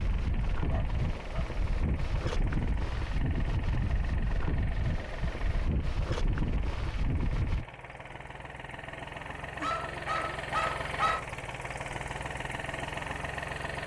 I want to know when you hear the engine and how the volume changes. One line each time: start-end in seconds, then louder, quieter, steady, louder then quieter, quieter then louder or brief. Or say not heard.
0.0-13.8 louder.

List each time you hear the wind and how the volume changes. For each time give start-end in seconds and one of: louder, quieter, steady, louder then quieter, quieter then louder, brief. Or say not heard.
0.0-7.7 steady.